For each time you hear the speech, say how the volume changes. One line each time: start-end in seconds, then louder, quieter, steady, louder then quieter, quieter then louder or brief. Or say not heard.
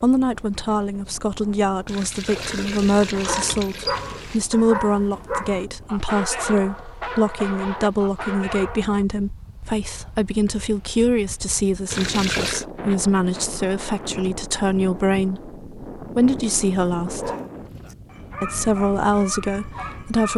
0.0-17.3 steady
18.4-20.3 brief.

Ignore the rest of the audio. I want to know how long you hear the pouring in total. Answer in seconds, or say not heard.
3 s.